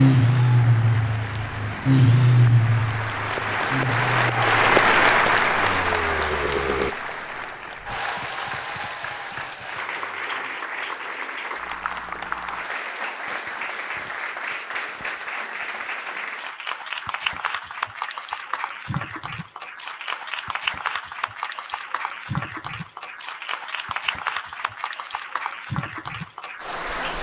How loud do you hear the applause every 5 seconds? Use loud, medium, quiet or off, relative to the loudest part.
loud, loud, medium, medium, medium, medium.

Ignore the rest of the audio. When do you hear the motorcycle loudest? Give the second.
2 s.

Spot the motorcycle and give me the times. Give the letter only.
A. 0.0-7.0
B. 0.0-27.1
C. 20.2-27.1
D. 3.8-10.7
A.